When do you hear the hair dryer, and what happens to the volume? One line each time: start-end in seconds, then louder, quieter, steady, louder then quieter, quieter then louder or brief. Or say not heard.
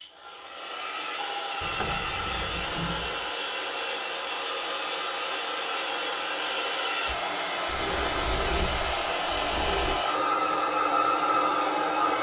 0.0-12.1 louder.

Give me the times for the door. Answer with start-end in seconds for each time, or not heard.
1.6-3.3, 7.7-10.0.